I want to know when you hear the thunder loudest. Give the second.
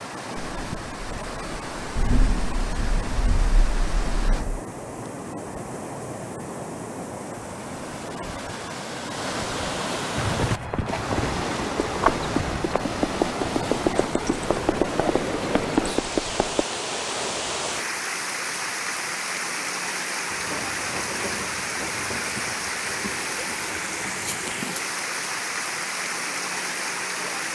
2 s.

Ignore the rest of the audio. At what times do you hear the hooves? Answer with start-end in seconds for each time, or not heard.
10.2-16.6.